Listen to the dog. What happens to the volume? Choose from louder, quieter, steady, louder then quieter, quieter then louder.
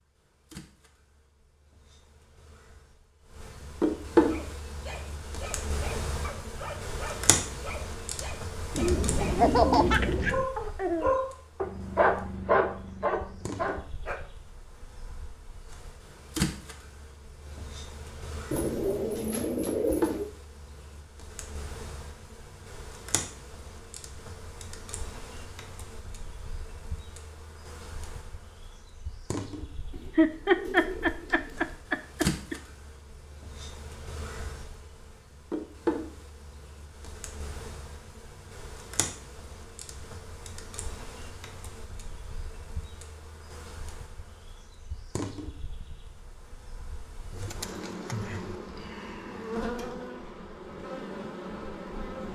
louder.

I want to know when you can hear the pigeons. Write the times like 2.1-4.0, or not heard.
8.7-10.5, 18.5-20.3, 29.9-31.7, 47.3-48.5.